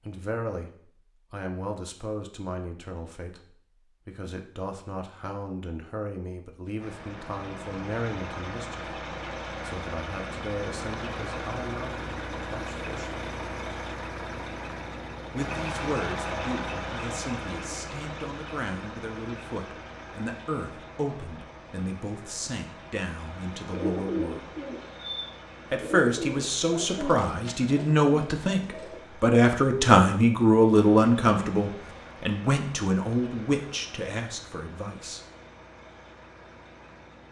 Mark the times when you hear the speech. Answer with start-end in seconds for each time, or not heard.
0.0-3.4, 4.0-8.8, 9.6-13.1, 15.3-24.6, 25.7-35.2.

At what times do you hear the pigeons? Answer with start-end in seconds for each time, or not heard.
23.6-29.0.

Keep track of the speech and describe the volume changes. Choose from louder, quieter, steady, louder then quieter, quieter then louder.
louder.